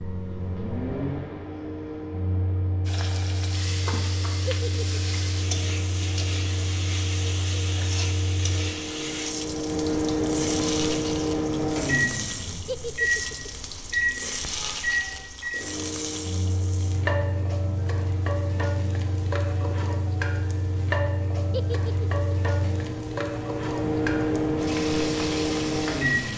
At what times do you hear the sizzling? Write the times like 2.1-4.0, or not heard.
2.9-26.3.